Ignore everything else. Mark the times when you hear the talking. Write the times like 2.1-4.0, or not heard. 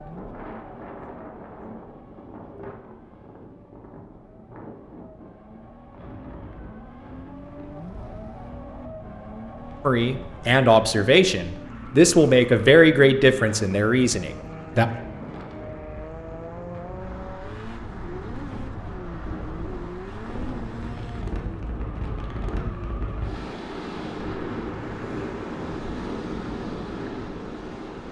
9.8-14.8.